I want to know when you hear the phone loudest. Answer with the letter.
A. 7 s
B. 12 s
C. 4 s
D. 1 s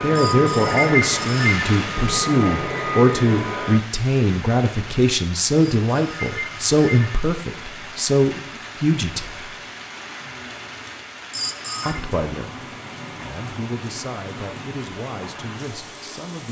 D.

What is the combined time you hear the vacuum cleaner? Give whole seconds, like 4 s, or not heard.
4 s.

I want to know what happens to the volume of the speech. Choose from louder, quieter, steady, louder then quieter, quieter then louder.
quieter.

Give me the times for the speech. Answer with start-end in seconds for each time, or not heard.
0.0-9.6, 11.8-16.4.